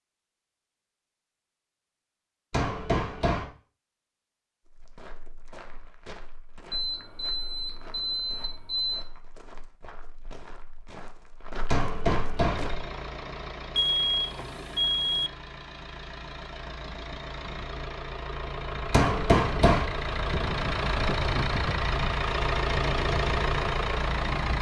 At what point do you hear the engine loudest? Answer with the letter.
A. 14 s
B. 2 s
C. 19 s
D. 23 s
D.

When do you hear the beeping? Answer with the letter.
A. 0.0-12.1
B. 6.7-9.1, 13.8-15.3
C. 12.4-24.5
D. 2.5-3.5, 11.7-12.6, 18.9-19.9
B.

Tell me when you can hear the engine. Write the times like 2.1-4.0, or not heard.
12.4-24.5.